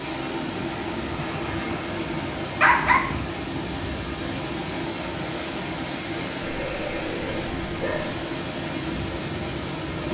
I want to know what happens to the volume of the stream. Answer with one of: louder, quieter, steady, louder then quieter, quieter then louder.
steady.